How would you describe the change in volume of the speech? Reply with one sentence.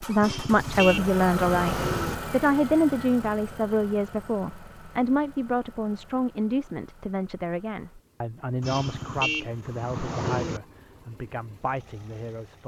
The volume of the speech goes down.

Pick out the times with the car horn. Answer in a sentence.
The car horn can be heard from 0.2 to 2.1 s and from 8.6 to 10.6 s.